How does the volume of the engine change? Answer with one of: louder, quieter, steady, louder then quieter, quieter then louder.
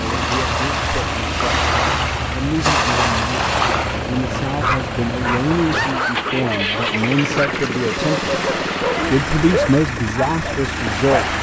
steady.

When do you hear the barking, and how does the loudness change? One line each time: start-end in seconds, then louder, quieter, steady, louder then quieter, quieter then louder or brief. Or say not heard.
4.4-11.2 steady.